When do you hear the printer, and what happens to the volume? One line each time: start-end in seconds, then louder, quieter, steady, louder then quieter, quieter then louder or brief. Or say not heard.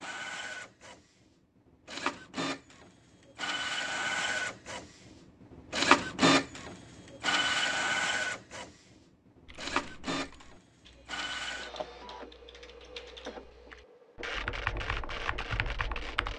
0.0-16.3 louder then quieter.